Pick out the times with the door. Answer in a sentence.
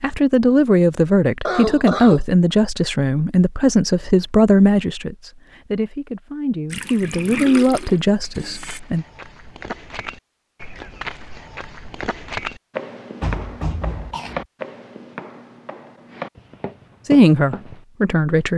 You can hear the door from 13.2 to 14.3 s.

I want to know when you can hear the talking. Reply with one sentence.
The talking can be heard from 0.0 to 9.1 s and from 17.1 to 18.5 s.